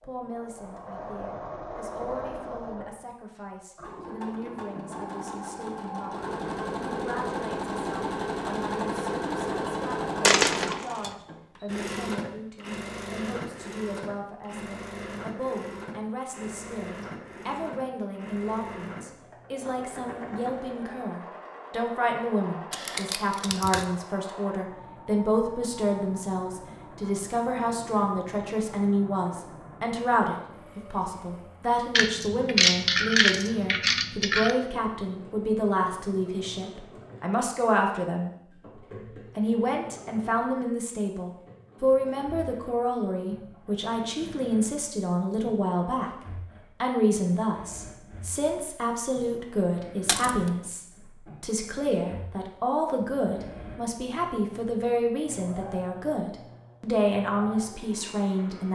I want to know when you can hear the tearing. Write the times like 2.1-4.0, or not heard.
22.7-23.9.